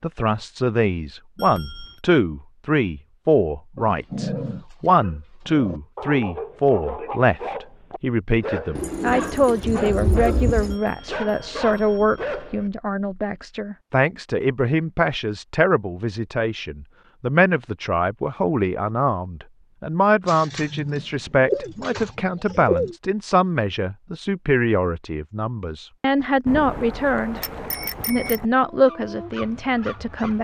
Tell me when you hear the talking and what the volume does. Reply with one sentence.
You can hear the talking from 0.0 to 27.4 s, at a steady volume; and briefly from 28.1 to 30.3 s.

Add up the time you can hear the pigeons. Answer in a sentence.
You can hear the pigeons for 5 seconds altogether.